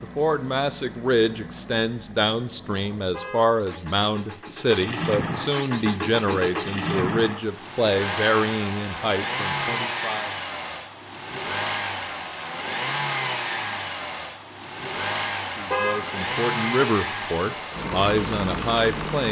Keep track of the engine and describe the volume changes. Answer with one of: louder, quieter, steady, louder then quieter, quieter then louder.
louder.